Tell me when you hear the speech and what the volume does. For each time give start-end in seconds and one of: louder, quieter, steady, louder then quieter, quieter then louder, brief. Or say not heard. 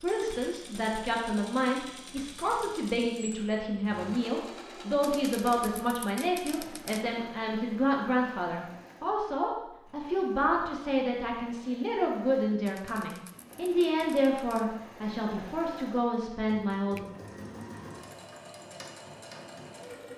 0.0-17.1 steady.